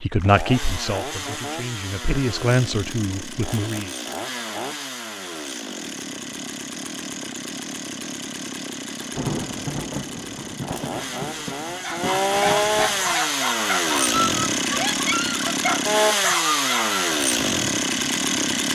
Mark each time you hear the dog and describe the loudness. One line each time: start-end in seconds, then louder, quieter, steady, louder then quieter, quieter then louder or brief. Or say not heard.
11.7-17.0 steady.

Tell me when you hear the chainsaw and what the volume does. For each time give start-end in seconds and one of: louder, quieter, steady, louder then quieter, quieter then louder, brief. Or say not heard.
0.1-18.7 louder.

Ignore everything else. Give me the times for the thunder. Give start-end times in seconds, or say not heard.
9.0-13.3.